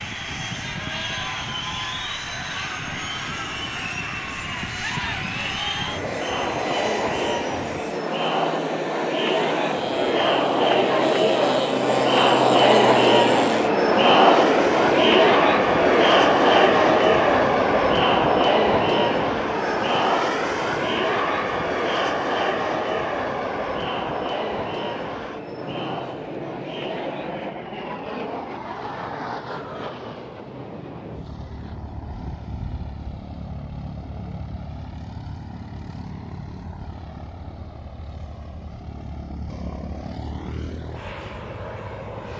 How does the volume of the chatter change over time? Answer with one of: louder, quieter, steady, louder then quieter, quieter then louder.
louder then quieter.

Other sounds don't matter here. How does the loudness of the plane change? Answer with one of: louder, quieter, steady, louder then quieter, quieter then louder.
louder then quieter.